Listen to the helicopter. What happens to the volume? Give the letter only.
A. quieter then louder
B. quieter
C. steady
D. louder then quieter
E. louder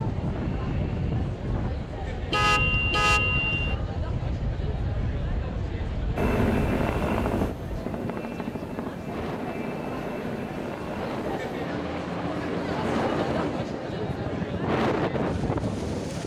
B.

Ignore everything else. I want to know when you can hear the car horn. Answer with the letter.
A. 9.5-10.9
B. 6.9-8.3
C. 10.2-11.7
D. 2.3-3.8
D.